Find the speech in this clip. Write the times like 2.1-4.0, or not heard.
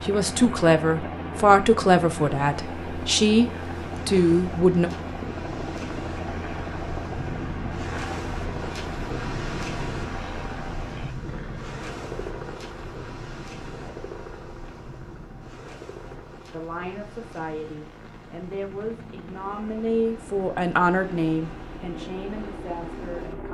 0.0-4.9, 16.1-23.4.